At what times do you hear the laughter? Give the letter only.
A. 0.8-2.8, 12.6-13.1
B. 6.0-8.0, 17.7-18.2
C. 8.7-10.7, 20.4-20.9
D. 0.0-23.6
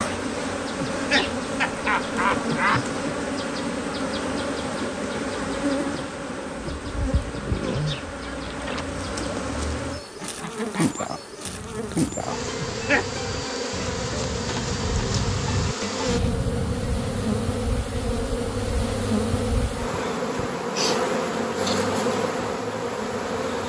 A.